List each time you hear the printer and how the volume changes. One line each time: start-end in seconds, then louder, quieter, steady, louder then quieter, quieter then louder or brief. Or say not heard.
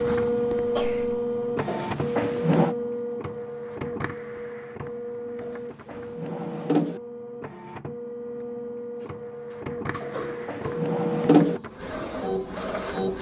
0.0-13.1 quieter then louder.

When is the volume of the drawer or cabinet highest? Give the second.
11 s.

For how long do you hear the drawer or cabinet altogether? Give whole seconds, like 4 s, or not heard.
4 s.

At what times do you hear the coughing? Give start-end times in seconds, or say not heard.
0.5-1.2, 9.0-10.8.